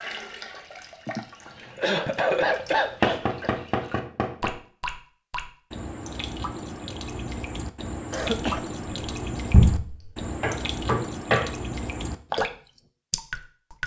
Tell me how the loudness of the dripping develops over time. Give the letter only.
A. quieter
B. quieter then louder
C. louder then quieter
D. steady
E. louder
E.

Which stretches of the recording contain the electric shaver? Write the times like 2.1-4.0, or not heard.
not heard.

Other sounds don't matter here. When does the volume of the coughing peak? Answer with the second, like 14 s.
2 s.